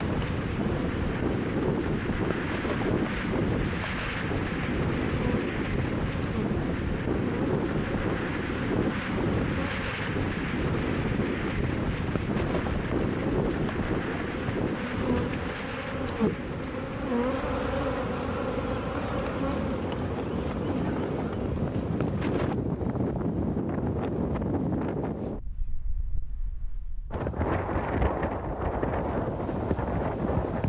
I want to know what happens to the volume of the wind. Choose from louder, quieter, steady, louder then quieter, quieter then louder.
steady.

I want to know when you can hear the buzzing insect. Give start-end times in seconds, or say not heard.
0.0-22.6.